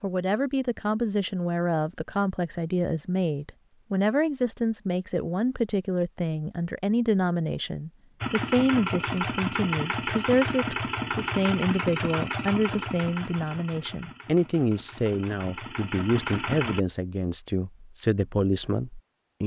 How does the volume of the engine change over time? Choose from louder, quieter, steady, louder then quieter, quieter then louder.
quieter then louder.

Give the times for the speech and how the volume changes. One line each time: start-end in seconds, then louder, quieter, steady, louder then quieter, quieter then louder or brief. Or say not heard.
0.0-19.4 steady.